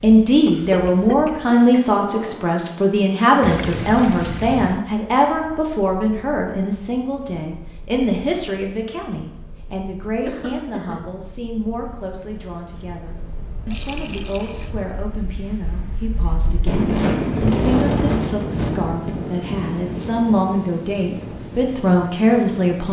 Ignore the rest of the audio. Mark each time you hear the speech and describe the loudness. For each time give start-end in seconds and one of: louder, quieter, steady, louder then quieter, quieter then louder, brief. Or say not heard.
0.0-22.8 quieter then louder.